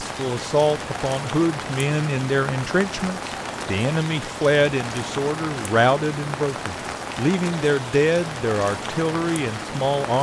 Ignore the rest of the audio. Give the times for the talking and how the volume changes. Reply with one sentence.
You can hear the talking from 0.0 to 10.1 s, at a steady volume.